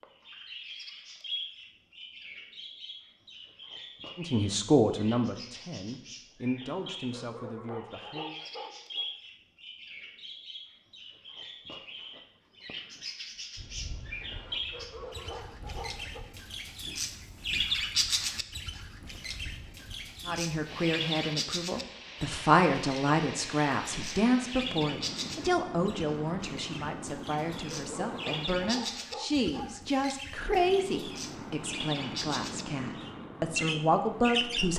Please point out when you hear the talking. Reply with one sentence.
The talking can be heard from 4.2 to 8.3 s and from 20.2 to 34.7 s.